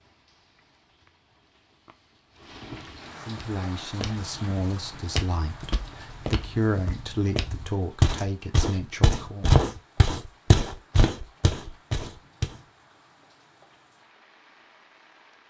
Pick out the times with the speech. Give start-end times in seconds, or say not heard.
3.2-9.5.